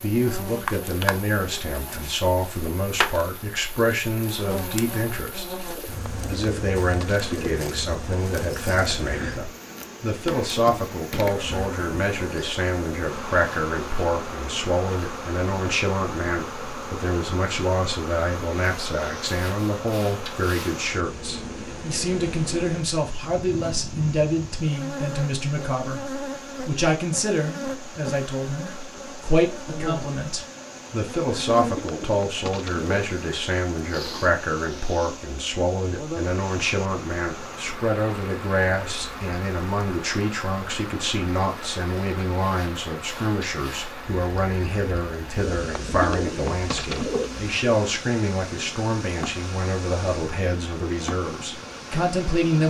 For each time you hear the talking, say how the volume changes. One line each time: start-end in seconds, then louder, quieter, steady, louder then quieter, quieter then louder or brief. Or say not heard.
0.0-52.6 steady.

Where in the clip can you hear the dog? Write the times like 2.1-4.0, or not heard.
not heard.